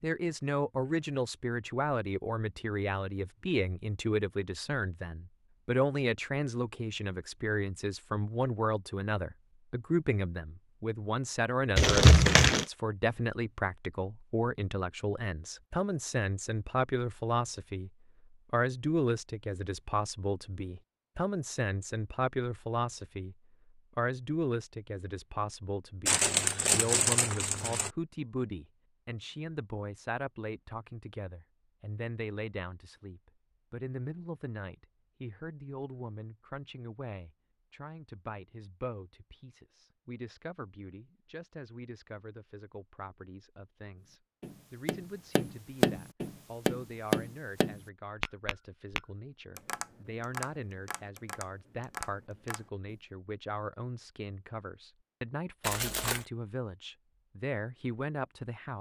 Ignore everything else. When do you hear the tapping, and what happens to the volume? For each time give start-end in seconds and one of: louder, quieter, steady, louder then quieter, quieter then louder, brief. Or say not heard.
44.4-52.9 quieter.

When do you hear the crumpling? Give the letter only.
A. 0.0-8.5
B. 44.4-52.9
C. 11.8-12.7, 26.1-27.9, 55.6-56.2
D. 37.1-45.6
C.